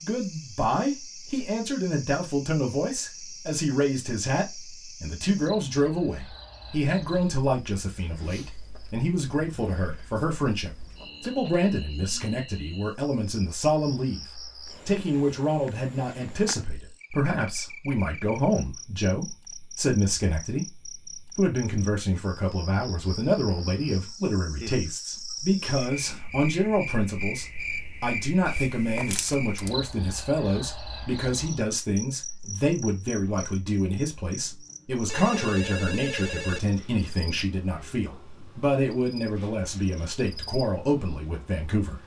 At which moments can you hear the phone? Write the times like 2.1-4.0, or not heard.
35.0-36.6.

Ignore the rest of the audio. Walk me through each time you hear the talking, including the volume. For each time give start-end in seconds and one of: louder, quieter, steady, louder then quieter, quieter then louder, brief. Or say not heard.
0.0-42.0 steady.